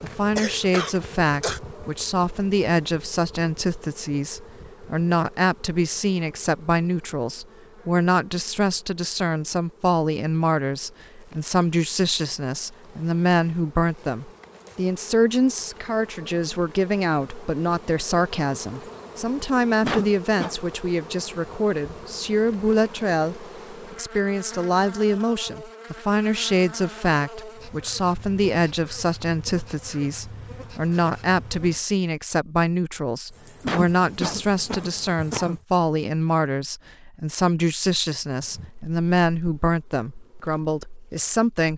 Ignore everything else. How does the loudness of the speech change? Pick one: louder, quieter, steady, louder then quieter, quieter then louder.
steady.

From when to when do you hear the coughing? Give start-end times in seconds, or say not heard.
0.3-1.6, 19.8-20.6, 33.6-35.6.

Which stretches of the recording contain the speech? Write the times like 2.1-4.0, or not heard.
0.0-41.7.